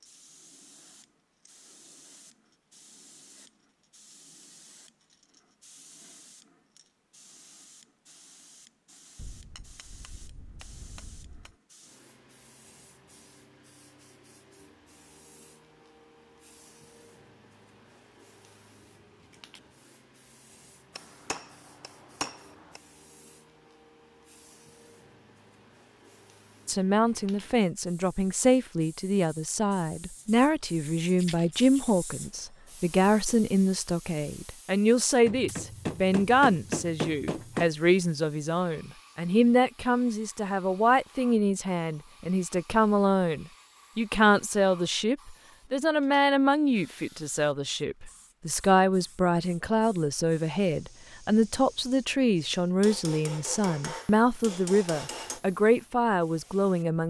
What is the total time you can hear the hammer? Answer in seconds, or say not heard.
9 s.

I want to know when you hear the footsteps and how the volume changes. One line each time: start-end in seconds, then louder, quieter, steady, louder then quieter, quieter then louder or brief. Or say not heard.
not heard.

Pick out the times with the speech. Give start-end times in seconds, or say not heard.
26.6-57.0.